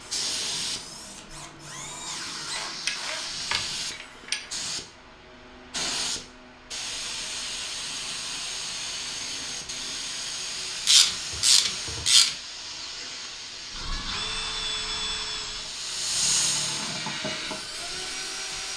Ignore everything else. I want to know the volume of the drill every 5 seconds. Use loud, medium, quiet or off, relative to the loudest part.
medium, off, loud, loud.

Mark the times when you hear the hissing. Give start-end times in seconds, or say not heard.
0.0-18.7.